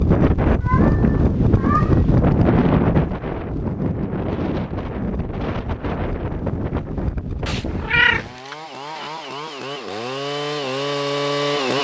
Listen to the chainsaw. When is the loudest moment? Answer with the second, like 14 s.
11 s.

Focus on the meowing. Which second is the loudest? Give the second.
8 s.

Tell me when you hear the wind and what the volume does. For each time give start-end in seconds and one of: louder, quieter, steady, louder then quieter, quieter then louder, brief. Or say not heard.
0.0-8.3 quieter.